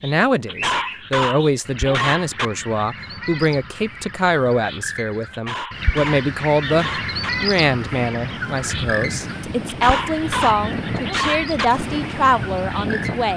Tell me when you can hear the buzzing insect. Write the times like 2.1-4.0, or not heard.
not heard.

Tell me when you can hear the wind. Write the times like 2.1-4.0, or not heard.
6.7-13.3.